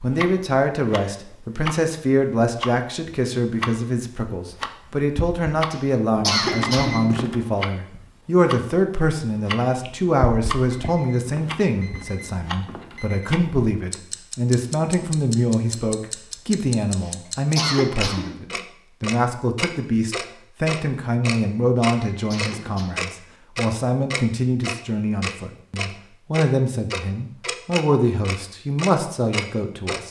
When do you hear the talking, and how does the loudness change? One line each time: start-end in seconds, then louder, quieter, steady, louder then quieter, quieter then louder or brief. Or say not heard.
0.0-30.0 steady.